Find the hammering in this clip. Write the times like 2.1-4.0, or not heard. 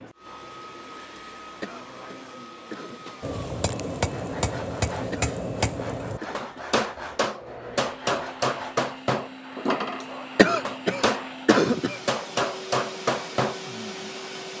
3.2-13.6.